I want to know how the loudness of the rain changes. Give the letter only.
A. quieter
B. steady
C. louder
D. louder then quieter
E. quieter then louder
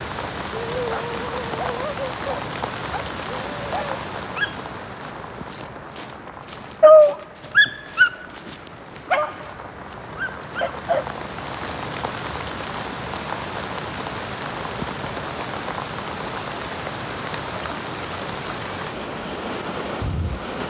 E.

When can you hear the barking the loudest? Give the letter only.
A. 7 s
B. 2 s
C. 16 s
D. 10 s
A.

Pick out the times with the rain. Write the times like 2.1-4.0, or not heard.
0.0-20.6.